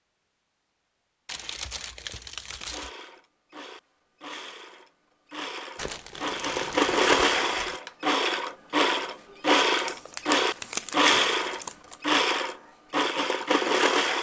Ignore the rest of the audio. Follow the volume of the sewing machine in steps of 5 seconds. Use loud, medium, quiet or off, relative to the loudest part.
quiet, loud, loud.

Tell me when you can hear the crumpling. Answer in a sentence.
You can hear the crumpling from 1.2 to 2.9 s, from 5.8 to 7.8 s and from 9.7 to 11.9 s.